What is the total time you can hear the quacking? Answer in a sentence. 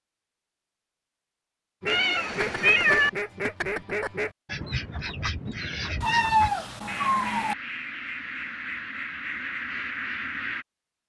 The quacking can be heard for 9 seconds in total.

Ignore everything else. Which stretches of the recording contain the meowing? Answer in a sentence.
The meowing can be heard from 1.9 to 3.1 s and from 6.0 to 7.5 s.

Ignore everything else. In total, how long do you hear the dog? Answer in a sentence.
You can't hear the dog here.